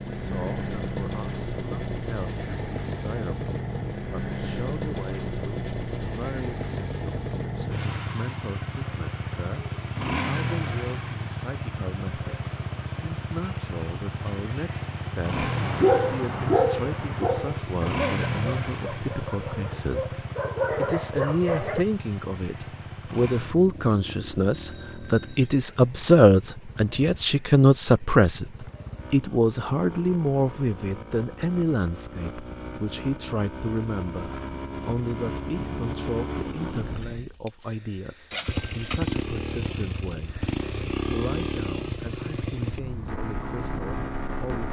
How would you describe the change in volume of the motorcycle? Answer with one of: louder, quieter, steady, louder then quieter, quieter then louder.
quieter then louder.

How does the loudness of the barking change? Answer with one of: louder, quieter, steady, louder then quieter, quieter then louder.
quieter then louder.